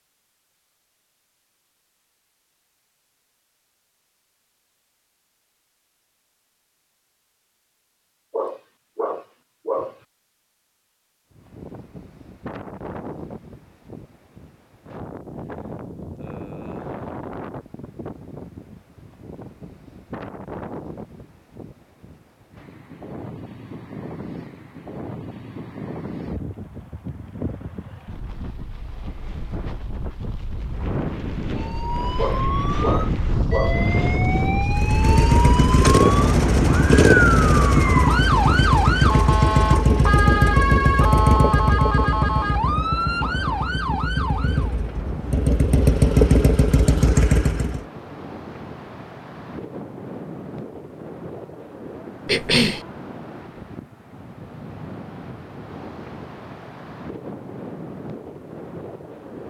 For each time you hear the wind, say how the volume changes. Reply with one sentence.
You can hear the wind from 11.3 to 59.4 s, getting louder then quieter.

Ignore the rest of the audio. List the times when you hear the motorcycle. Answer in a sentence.
You can hear the motorcycle from 34.6 to 47.9 s.